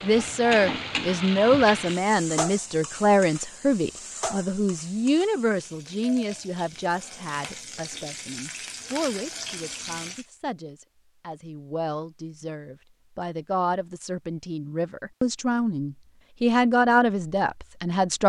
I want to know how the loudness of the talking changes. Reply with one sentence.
The volume of the talking goes down, then up.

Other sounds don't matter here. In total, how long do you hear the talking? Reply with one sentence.
You can hear the talking for 18 seconds altogether.